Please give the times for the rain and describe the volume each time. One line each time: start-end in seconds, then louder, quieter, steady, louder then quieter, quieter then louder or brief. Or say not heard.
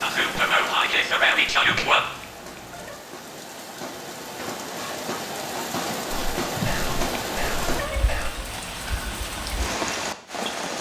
0.0-10.7 louder.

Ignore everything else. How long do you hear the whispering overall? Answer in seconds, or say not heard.
4 s.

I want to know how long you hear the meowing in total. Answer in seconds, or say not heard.
3 s.